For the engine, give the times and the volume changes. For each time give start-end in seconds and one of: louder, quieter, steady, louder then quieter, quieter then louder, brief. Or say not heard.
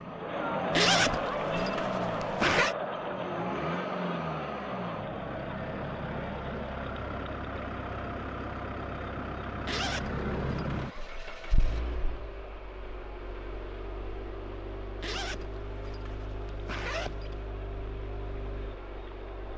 0.0-19.5 quieter.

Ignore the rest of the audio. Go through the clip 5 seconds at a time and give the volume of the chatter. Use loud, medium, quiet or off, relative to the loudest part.
loud, medium, quiet, quiet.